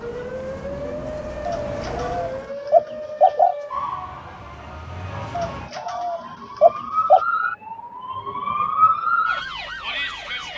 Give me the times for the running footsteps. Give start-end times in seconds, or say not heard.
not heard.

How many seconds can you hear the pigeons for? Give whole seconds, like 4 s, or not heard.
4 s.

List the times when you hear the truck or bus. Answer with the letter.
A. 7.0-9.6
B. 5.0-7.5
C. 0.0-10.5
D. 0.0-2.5
D.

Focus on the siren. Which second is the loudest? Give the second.
9 s.